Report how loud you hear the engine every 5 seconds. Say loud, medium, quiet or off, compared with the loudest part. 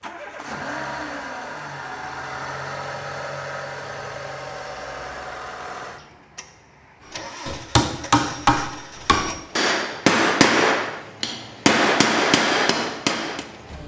loud, medium, medium.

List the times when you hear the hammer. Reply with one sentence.
You can hear the hammer from 7.5 to 13.4 s.